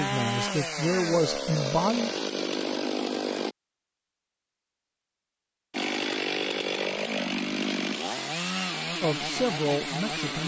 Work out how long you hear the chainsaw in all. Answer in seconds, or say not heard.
8 s.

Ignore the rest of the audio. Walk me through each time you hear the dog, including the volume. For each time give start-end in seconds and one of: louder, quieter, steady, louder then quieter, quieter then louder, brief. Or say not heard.
not heard.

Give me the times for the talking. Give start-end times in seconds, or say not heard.
0.0-2.2, 9.0-10.4.